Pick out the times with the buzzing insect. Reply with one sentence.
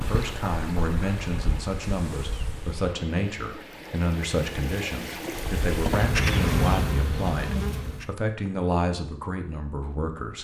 You can hear the buzzing insect from 0.0 to 2.9 s and from 5.2 to 8.2 s.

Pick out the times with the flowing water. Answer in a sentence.
You can hear the flowing water from 0.0 to 6.2 s.